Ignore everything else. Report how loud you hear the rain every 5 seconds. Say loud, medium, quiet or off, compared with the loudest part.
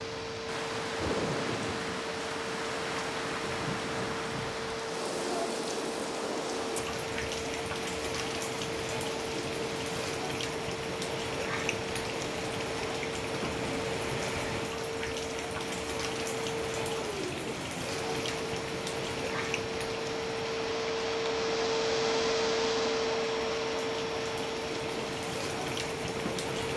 loud, loud, loud, loud, medium, loud.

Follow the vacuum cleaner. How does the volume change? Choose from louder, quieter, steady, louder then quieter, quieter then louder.
louder.